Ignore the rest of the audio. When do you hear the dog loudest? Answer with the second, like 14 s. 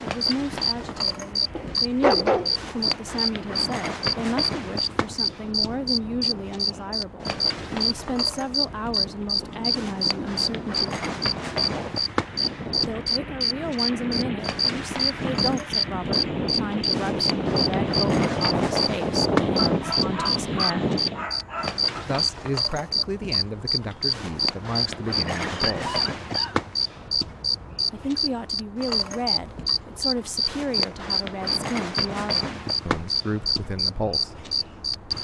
2 s.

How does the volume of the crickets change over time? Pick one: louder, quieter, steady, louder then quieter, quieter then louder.
steady.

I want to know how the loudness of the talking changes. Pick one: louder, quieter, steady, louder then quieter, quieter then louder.
steady.